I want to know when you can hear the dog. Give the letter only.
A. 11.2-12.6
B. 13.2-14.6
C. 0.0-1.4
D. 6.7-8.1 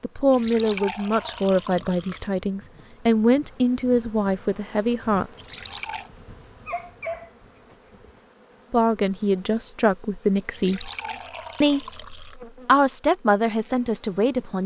D.